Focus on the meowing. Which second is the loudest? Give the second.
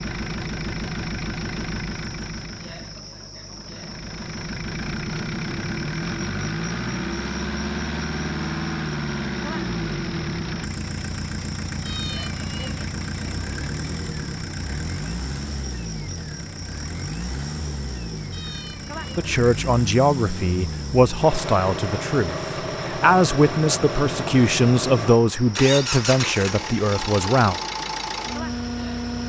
12 s.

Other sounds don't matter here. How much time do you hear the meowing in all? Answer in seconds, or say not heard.
2 s.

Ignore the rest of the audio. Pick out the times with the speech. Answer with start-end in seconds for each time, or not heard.
19.1-27.6.